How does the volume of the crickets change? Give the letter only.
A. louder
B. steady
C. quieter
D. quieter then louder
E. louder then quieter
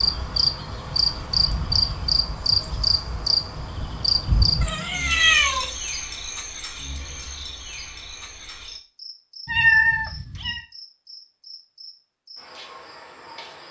C.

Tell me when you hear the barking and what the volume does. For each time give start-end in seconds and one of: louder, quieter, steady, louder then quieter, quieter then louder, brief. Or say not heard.
not heard.